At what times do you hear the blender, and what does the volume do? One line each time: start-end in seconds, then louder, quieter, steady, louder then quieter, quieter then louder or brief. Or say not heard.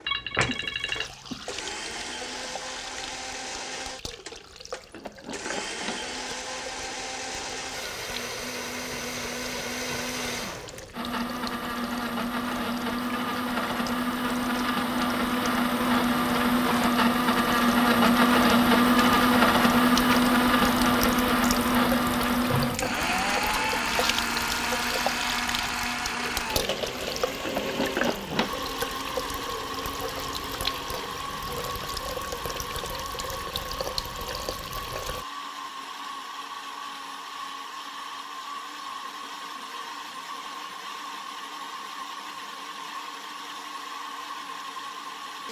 0.0-45.4 louder then quieter.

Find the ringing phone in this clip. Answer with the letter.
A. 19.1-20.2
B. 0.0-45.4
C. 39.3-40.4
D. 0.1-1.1
D.